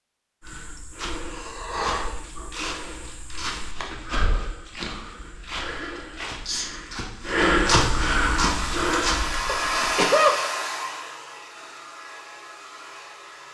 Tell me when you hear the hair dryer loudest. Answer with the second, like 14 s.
10 s.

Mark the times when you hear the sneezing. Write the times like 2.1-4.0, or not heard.
0.8-2.5, 5.8-6.8, 9.4-10.4.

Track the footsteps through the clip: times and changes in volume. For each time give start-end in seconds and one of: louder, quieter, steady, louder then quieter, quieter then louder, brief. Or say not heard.
0.4-10.1 louder.